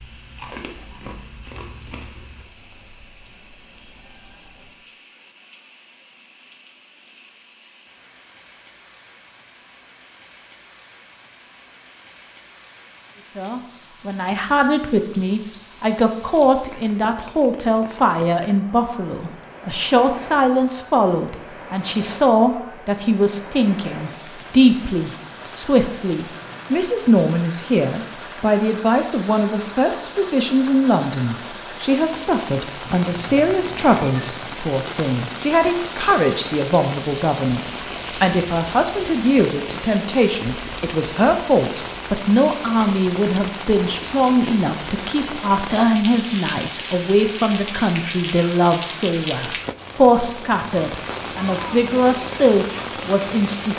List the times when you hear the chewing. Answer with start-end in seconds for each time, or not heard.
0.0-2.5.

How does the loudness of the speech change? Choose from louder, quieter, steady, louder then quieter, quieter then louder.
steady.